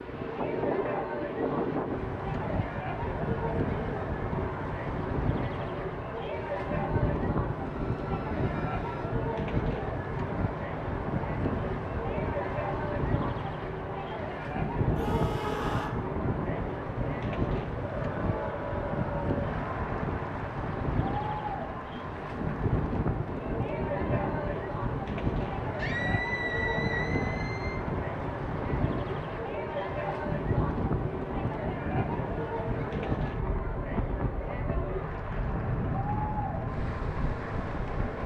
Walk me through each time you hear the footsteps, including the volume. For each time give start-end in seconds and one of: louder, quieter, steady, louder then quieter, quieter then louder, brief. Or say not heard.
not heard.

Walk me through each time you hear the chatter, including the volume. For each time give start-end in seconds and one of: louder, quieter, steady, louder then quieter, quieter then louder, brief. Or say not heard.
0.0-38.2 steady.